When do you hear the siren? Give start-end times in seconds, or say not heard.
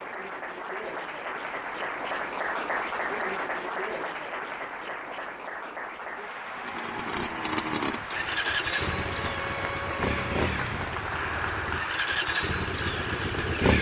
not heard.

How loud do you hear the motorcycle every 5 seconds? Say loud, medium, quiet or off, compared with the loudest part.
off, loud, loud.